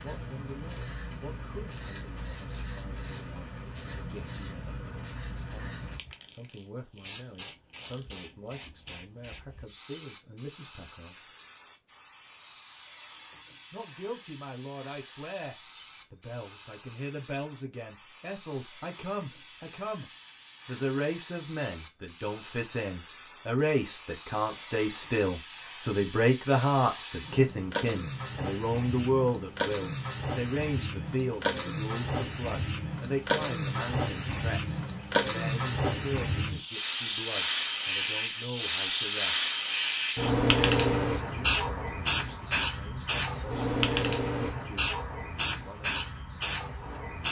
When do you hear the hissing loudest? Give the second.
39 s.